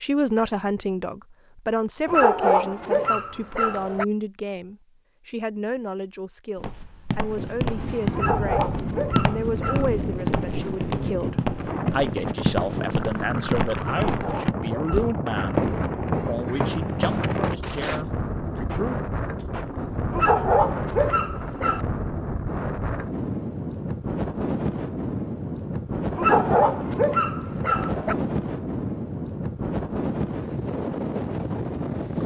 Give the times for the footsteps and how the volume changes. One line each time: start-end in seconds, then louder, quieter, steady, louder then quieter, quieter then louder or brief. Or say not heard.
6.5-18.1 steady.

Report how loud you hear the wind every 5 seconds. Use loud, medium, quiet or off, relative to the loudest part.
off, loud, loud, loud, loud, loud, loud.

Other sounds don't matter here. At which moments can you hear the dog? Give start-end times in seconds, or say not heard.
2.0-4.0, 8.1-9.9, 13.8-15.7, 20.1-21.9, 26.1-28.1.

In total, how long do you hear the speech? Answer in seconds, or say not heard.
19 s.